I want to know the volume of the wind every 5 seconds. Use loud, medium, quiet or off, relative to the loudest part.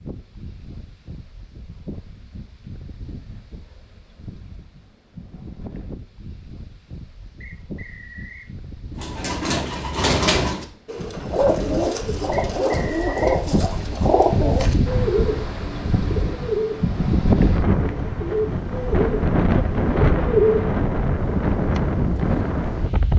quiet, quiet, medium, loud, loud.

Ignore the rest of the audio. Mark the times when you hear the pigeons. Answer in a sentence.
You can hear the pigeons from 8.9 to 20.8 s.